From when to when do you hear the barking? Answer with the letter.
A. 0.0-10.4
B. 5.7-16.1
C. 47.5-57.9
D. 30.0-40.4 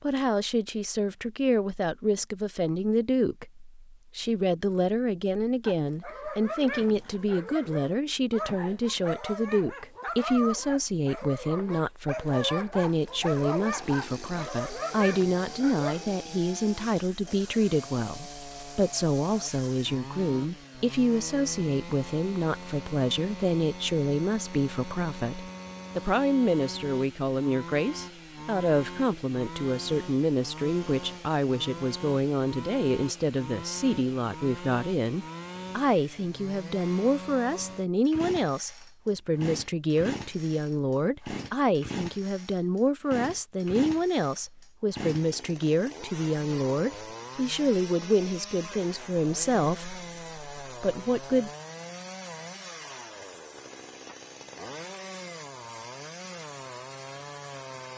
B.